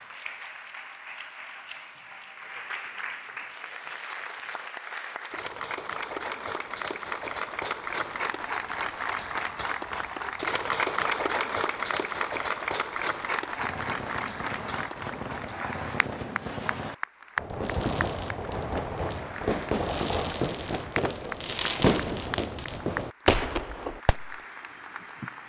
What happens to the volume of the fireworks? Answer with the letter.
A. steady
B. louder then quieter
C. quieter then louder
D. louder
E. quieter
D.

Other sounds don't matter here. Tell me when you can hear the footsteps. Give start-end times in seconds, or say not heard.
not heard.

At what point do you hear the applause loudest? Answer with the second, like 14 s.
11 s.